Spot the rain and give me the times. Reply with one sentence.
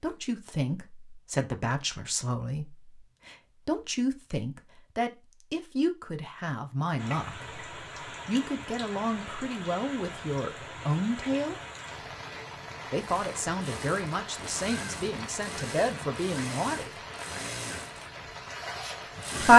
The rain can be heard from 7.0 to 19.4 s.